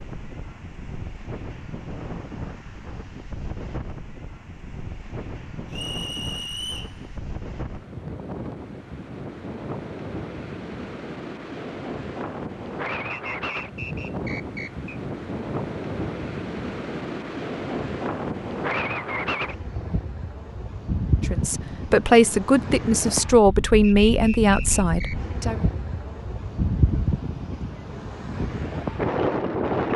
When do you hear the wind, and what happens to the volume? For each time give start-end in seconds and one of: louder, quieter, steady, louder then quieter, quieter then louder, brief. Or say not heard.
0.0-29.9 louder.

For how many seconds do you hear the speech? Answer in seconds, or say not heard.
4 s.